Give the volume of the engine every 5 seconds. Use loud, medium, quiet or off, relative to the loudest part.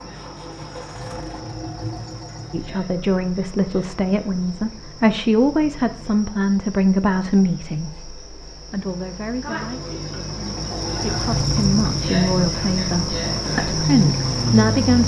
medium, off, loud.